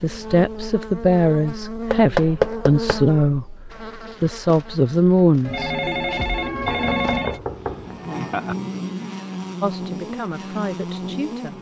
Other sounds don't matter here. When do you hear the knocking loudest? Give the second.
2 s.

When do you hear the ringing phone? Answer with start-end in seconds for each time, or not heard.
5.5-7.4.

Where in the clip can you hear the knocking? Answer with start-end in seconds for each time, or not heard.
1.9-3.0, 6.6-8.6.